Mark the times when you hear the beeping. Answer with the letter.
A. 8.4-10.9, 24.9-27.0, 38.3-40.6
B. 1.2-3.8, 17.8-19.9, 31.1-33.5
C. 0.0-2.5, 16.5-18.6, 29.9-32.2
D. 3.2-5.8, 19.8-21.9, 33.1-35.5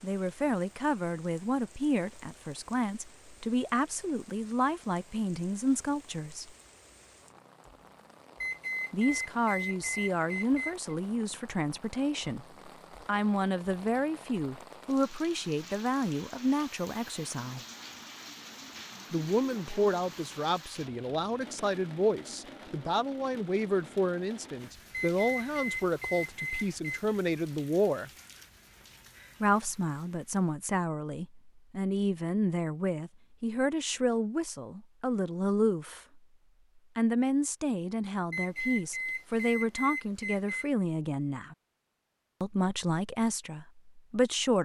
A.